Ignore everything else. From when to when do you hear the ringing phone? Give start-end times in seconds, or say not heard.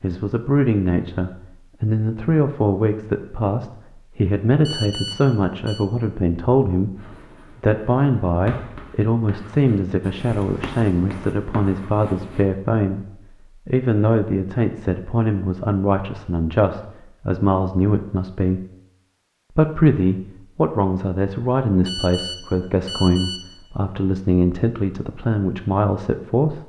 4.7-5.8, 21.9-23.5.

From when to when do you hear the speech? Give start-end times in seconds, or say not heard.
0.0-6.9, 7.6-18.6, 19.6-26.6.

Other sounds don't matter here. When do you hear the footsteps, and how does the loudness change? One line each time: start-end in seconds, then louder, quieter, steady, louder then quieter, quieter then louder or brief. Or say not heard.
not heard.